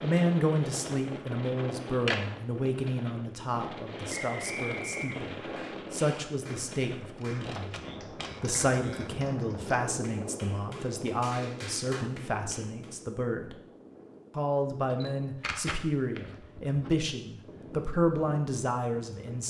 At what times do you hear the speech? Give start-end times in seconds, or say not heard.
0.0-7.8, 8.4-13.6, 14.3-19.4.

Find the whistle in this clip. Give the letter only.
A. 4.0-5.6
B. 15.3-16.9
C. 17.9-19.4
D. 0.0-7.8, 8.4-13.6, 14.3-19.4
A.